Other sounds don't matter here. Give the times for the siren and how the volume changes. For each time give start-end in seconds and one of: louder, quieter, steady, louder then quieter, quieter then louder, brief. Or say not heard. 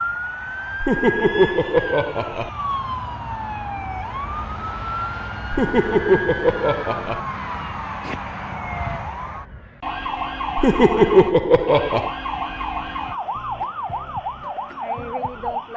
0.0-15.7 steady.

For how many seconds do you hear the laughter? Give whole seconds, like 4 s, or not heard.
5 s.